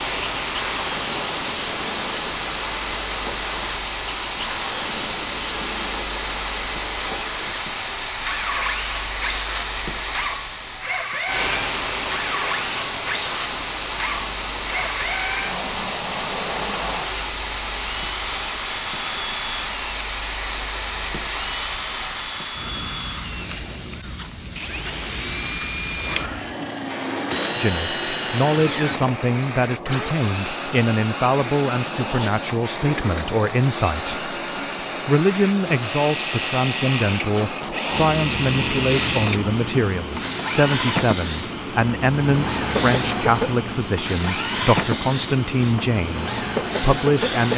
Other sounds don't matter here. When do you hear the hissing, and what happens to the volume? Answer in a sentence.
The hissing can be heard from 0.0 to 47.5 s, at a steady volume.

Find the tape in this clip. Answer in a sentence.
You can hear the tape from 37.2 to 37.8 s.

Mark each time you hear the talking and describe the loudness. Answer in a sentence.
You can hear the talking from 27.6 to 47.5 s, at a steady volume.